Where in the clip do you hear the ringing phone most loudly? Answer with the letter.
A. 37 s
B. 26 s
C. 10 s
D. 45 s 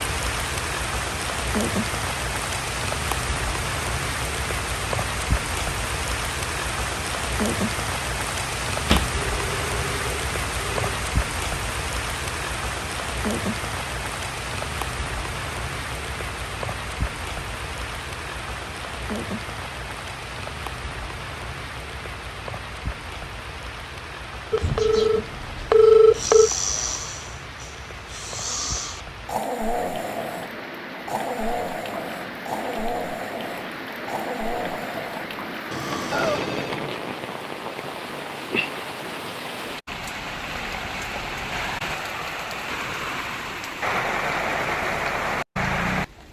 B.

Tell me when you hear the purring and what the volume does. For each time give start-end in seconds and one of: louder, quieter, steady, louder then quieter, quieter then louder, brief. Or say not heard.
not heard.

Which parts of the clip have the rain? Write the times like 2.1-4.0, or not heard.
0.0-46.2.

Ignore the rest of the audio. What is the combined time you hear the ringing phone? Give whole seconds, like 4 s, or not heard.
5 s.